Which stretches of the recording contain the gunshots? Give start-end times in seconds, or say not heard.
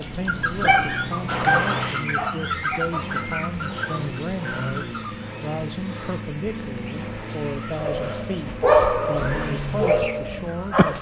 1.2-2.0.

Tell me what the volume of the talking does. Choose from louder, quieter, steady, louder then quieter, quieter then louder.
steady.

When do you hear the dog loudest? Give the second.
9 s.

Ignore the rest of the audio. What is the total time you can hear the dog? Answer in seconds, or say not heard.
6 s.